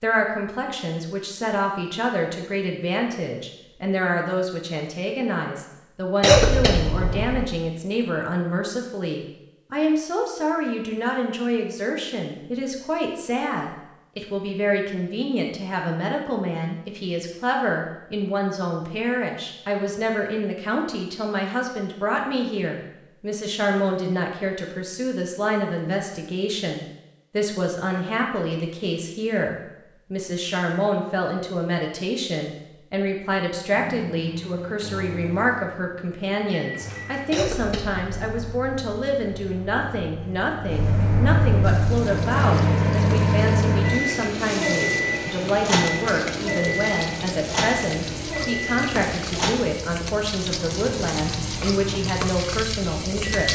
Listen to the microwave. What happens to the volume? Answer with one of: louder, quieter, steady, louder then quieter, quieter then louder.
louder then quieter.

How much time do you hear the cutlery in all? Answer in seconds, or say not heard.
not heard.